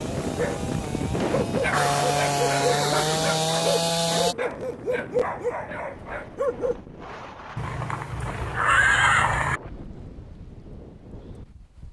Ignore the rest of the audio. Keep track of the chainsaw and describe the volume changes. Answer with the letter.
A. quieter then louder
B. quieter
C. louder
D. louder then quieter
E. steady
C.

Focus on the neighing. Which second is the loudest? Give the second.
9 s.